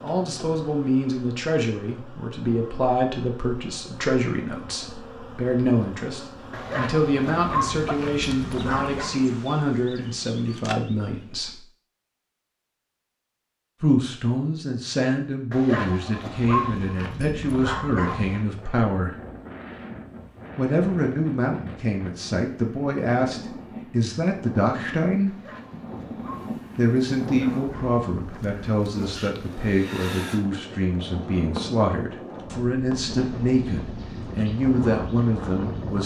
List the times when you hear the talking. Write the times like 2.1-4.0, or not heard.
0.0-11.6, 13.8-19.1, 20.6-25.4, 26.8-36.0.